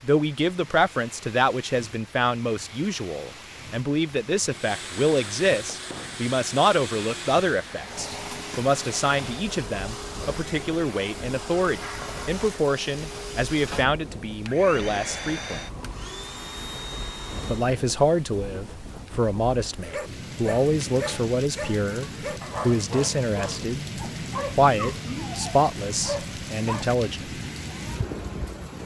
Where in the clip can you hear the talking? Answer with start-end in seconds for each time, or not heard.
0.0-15.6, 17.4-23.9, 24.6-27.3.